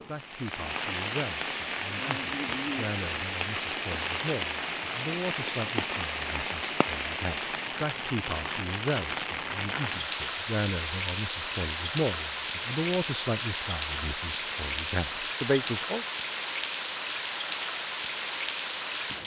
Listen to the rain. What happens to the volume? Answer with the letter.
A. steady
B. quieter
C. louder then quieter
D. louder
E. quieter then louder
A.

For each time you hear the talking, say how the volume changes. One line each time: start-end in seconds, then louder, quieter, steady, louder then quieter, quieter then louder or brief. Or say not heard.
0.1-16.1 louder.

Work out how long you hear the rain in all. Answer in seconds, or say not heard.
19 s.